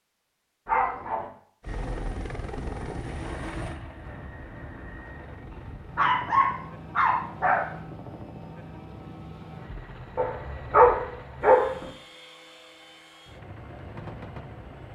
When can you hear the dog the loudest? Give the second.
11 s.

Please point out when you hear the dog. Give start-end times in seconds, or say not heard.
0.7-1.3, 5.5-7.7, 10.2-11.8.